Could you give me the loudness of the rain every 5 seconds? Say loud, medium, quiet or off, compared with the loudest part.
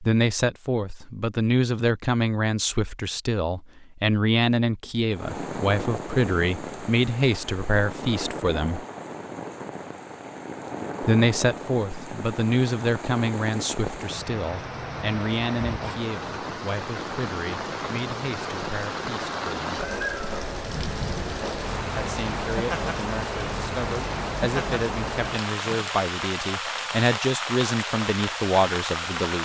off, medium, medium, loud, loud, loud.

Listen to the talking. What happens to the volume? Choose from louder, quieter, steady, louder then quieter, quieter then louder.
quieter then louder.